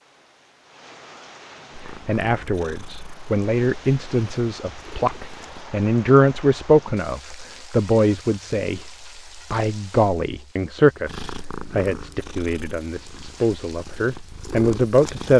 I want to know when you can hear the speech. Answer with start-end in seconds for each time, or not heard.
1.9-15.3.